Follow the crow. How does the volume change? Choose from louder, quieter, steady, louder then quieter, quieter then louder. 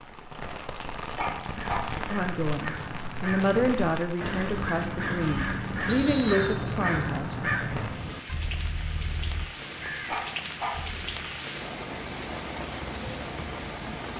louder then quieter.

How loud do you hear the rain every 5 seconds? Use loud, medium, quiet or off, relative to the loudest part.
loud, medium, loud.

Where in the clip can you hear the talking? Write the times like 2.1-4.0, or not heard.
1.9-7.3.